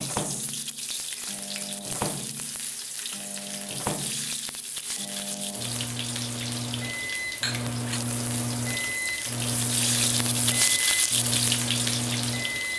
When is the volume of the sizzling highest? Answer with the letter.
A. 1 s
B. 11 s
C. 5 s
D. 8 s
B.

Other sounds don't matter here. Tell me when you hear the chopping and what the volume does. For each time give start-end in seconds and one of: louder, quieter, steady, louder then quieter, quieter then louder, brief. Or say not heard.
not heard.